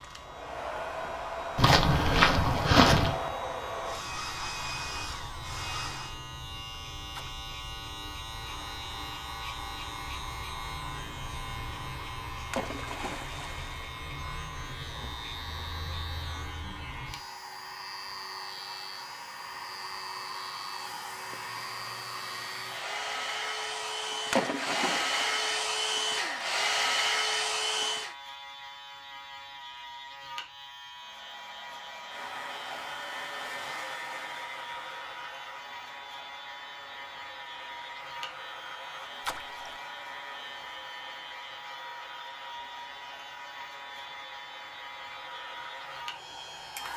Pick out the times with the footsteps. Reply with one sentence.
The footsteps can be heard from 1.6 to 3.2 s.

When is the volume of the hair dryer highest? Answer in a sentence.
The volume of the hair dryer peaks at 27 seconds.